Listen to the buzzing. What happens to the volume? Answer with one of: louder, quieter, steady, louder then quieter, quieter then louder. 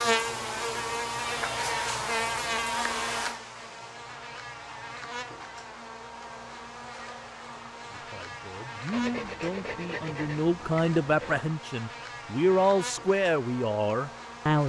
quieter.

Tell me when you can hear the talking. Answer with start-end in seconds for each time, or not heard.
7.9-14.6.